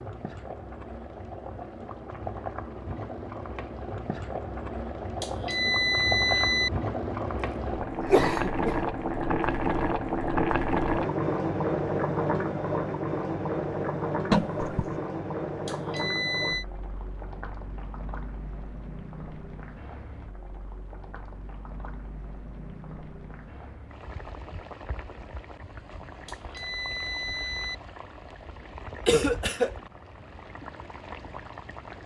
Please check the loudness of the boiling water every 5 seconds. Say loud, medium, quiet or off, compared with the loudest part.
medium, loud, loud, medium, quiet, quiet, quiet.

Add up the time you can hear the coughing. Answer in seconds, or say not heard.
3 s.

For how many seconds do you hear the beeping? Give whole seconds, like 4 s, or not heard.
4 s.